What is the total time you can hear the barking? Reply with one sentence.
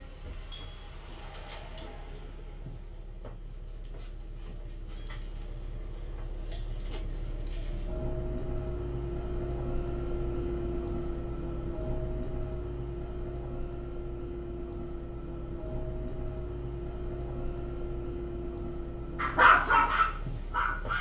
You can hear the barking for 2 seconds altogether.